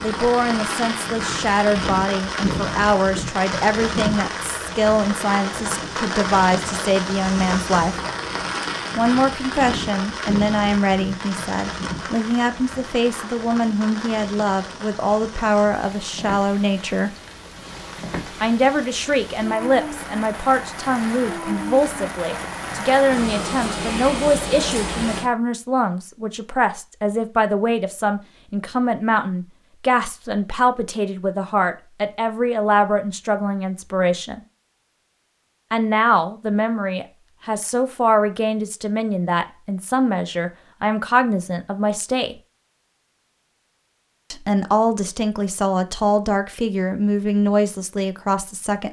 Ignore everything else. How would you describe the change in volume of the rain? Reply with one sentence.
The loudness of the rain goes down, then up.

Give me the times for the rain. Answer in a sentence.
You can hear the rain from 0.0 to 25.3 s.